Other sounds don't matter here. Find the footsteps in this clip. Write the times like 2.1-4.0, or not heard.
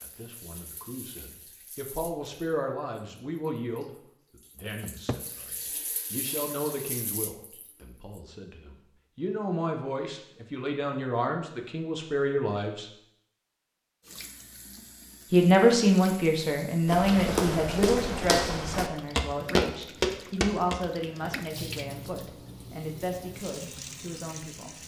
16.9-20.9.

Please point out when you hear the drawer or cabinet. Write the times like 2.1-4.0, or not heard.
4.8-5.3.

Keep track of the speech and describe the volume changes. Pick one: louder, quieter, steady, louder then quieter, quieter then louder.
louder then quieter.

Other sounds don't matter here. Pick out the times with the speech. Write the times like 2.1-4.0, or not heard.
0.0-12.8, 15.3-24.8.